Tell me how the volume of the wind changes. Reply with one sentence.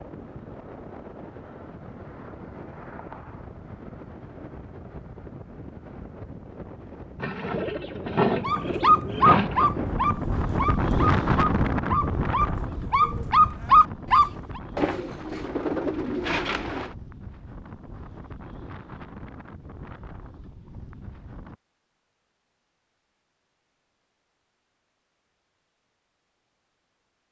The loudness of the wind goes up, then down.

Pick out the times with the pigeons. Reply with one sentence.
You can hear the pigeons from 7.2 to 9.7 s and from 14.8 to 16.9 s.